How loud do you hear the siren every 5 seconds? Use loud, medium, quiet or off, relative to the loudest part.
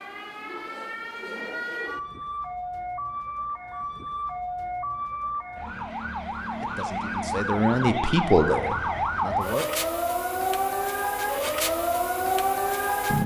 medium, loud, loud.